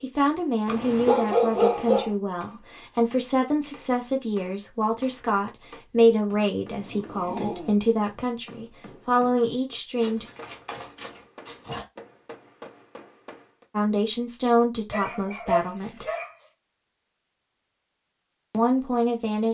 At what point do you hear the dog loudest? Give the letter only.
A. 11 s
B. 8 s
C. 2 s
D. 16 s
C.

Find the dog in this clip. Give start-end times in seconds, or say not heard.
0.7-2.1, 6.8-7.8, 10.0-11.8, 14.9-16.4.